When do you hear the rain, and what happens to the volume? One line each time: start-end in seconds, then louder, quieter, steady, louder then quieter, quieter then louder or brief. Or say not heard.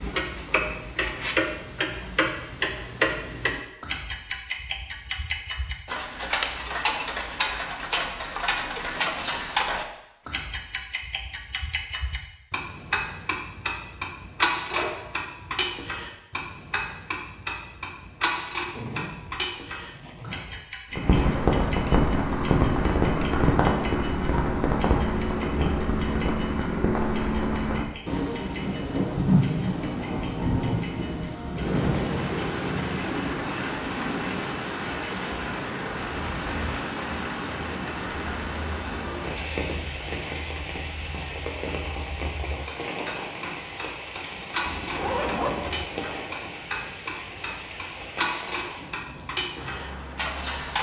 20.9-50.7 quieter.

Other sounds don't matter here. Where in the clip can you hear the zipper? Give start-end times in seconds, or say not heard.
14.7-15.2, 18.7-21.4, 44.6-45.9.